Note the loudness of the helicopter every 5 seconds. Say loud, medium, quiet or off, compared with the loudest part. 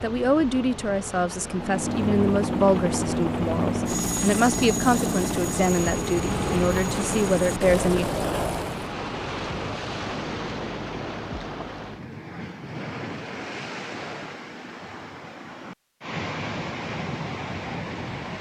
loud, loud, off, off.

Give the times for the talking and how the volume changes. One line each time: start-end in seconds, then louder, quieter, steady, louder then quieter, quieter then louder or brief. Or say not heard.
0.0-8.1 steady.